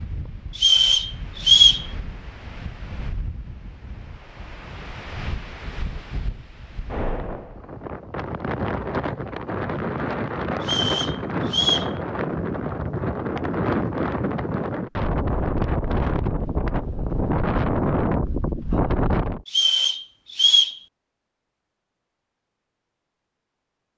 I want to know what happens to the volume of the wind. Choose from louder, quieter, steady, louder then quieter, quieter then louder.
louder.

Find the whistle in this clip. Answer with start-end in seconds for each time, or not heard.
0.6-1.9, 10.6-11.9, 19.4-20.8.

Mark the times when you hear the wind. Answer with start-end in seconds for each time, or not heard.
0.0-19.4.